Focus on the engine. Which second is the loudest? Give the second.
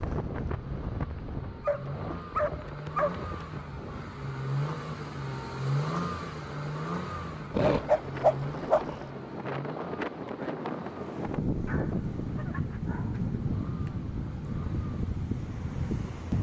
6 s.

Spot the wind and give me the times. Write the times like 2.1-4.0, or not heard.
0.0-16.3.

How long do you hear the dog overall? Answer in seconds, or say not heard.
5 s.